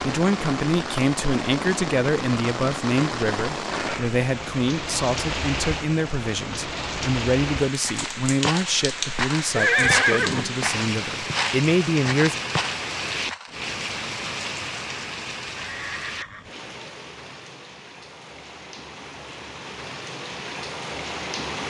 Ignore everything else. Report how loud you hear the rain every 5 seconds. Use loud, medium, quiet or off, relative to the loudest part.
loud, loud, loud, medium, loud.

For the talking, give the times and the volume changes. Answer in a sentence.
The talking can be heard from 0.0 to 12.3 s, at a steady volume.